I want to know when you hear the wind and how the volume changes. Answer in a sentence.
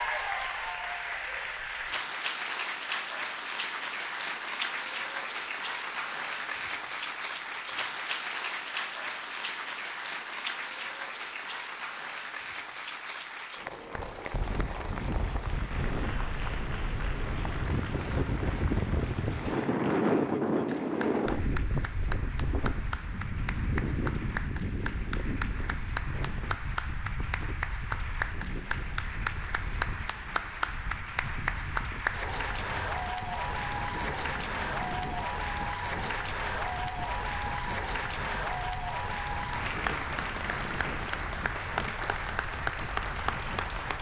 You can hear the wind from 13.9 to 43.9 s, getting quieter.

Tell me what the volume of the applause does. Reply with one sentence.
The loudness of the applause goes down, then up.